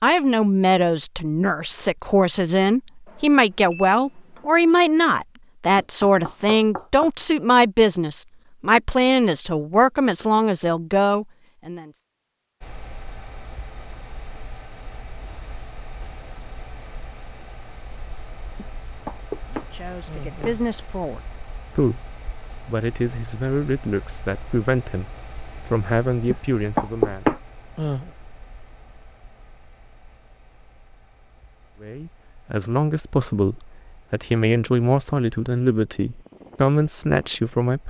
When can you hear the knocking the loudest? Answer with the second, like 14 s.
27 s.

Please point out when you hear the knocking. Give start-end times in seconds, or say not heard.
5.8-7.1, 18.6-20.6, 26.3-28.1.